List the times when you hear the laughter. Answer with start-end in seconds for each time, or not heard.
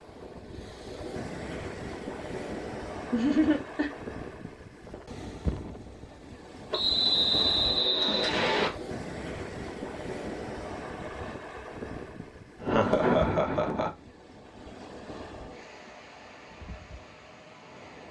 3.1-3.9, 12.6-13.9.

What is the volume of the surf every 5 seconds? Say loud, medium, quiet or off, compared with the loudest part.
loud, loud, loud, medium.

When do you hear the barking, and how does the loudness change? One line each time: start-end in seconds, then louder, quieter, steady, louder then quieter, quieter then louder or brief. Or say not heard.
not heard.